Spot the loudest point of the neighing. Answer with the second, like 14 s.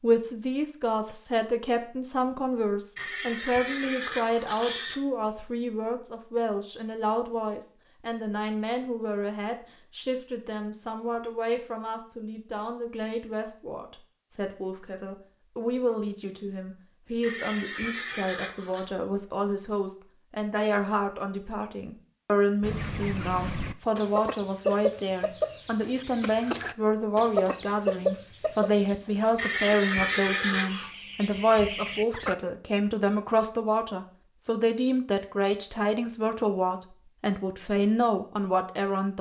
30 s.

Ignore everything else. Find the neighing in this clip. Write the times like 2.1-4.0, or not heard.
3.0-5.0, 17.2-18.9, 29.4-30.9.